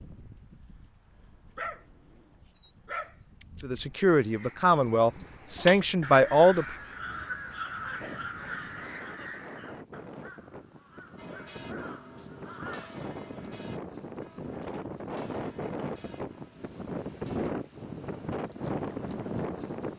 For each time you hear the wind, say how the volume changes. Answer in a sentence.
You can hear the wind from 0.0 to 19.9 s, getting louder.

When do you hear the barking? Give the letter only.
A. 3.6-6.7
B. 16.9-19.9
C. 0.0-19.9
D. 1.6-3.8
D.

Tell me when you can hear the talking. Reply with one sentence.
The talking can be heard from 3.6 to 6.7 s.